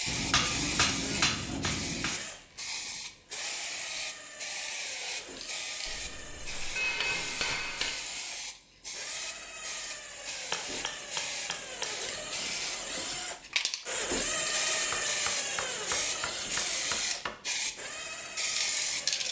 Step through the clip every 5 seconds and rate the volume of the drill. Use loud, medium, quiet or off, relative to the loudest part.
medium, medium, loud, loud.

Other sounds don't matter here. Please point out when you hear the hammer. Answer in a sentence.
The hammer can be heard from 0.1 to 2.2 s, from 5.8 to 8.0 s, from 10.2 to 11.9 s and from 14.9 to 17.4 s.